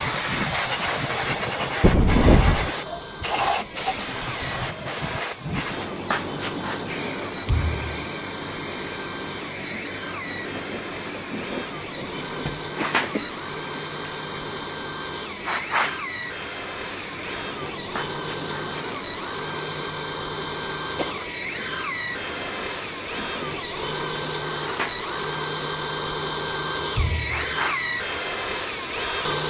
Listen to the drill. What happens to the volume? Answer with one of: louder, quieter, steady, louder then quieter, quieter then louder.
louder.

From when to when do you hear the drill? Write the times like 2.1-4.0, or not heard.
2.6-29.4.